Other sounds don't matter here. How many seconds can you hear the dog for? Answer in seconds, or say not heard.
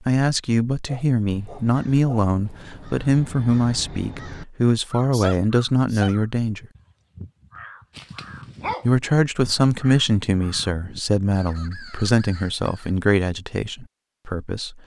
2 s.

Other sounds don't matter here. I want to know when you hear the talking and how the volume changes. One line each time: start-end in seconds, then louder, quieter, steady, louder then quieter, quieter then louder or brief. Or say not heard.
0.1-6.7 steady
8.8-14.8 quieter.